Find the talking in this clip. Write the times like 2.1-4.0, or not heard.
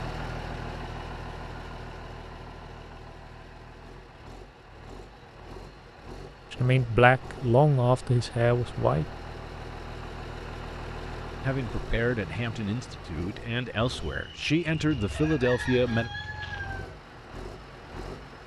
6.5-9.1, 11.4-16.1.